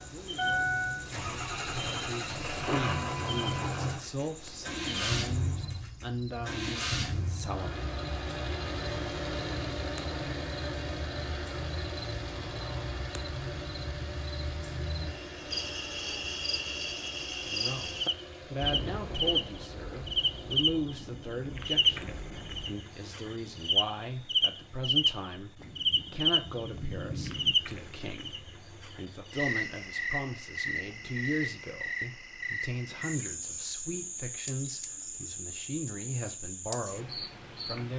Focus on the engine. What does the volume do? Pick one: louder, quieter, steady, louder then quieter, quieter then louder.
quieter.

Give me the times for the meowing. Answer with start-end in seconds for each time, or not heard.
not heard.